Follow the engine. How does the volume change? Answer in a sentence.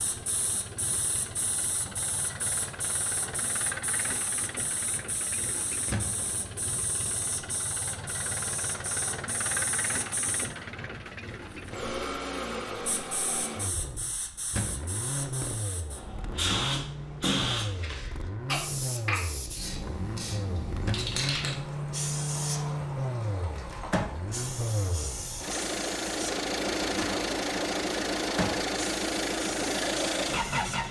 The loudness of the engine goes up.